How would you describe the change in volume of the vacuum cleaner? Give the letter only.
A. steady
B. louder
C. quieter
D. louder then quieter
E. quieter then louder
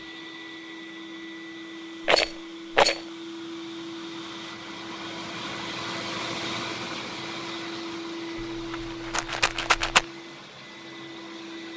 D.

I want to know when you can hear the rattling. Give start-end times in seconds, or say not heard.
2.0-3.0, 8.3-10.1.